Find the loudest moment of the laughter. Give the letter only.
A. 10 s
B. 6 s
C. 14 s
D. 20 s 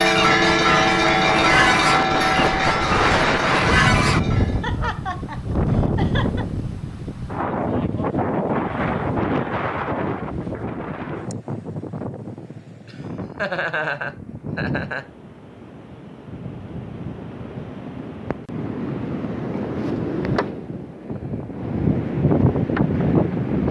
C.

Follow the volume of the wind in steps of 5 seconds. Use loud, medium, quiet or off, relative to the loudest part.
loud, loud, medium, medium, loud.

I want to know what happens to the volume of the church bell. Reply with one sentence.
The volume of the church bell goes down.